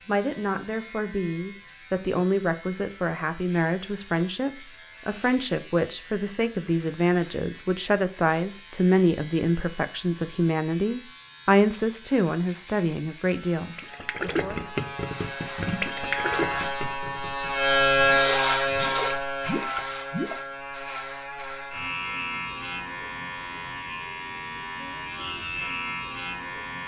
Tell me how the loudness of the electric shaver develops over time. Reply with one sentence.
The volume of the electric shaver goes up, then down.